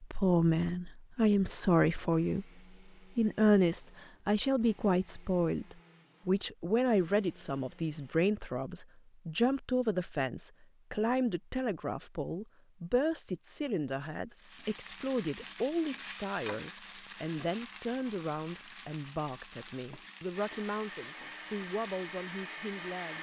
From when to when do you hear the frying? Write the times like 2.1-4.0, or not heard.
14.3-23.1.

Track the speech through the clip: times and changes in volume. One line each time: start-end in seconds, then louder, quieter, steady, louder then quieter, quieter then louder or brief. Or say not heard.
0.0-2.5 brief
3.1-23.1 quieter.